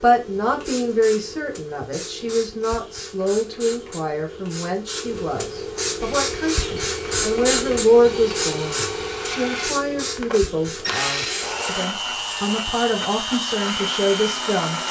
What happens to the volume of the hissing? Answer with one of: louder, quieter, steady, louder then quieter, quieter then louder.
louder then quieter.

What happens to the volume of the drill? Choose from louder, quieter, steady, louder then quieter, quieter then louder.
louder.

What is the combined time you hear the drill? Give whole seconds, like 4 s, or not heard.
9 s.